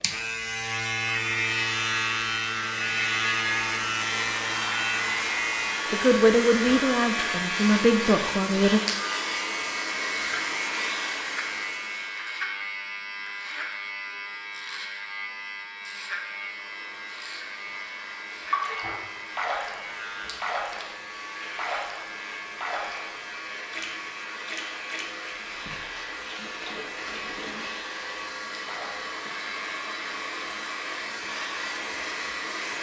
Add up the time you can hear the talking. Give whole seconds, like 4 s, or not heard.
3 s.